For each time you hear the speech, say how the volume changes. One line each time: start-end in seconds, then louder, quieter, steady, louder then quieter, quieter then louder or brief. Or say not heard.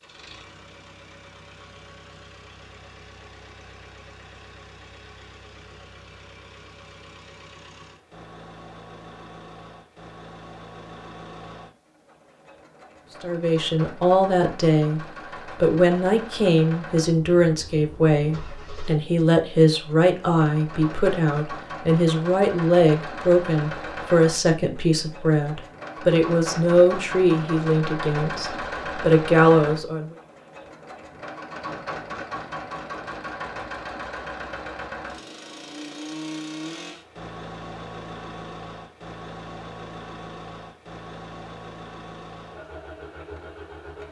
13.2-30.1 steady.